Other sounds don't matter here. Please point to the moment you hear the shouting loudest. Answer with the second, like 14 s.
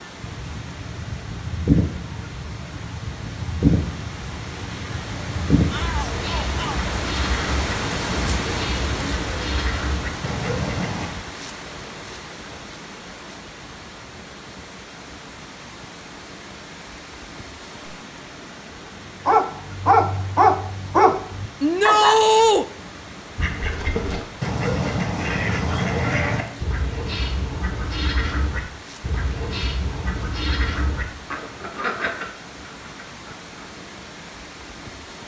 22 s.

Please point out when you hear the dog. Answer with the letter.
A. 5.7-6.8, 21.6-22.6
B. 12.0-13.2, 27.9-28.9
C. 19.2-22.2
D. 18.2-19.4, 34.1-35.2
C.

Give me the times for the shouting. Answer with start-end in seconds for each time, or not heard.
5.7-6.8, 21.6-22.6.